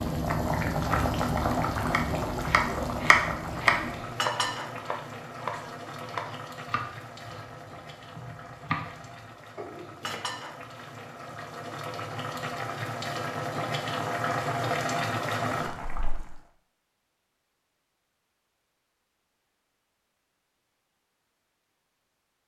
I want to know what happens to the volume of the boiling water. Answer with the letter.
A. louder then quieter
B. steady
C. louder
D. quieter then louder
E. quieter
D.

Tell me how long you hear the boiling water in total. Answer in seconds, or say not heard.
16 s.